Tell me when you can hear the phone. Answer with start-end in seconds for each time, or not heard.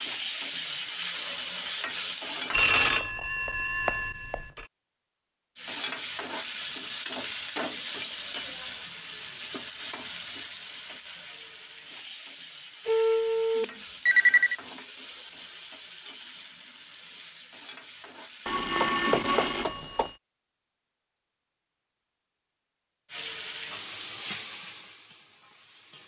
2.5-4.7, 12.8-14.6, 18.4-20.1.